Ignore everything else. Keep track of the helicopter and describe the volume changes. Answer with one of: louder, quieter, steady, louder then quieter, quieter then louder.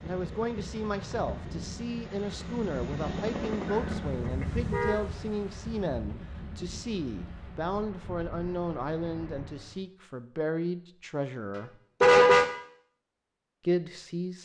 louder.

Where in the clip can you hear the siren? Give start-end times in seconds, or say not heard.
not heard.